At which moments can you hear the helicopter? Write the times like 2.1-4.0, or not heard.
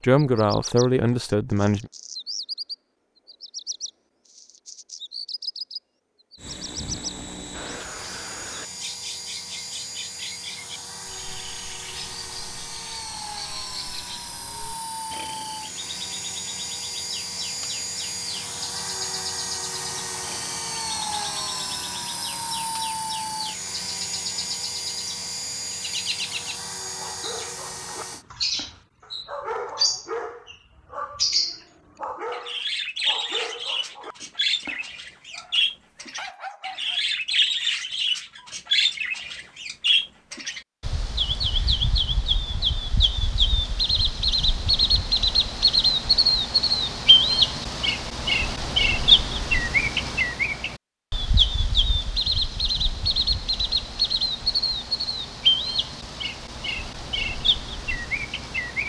6.3-28.2.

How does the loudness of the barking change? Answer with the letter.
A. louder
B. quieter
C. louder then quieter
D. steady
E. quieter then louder
C.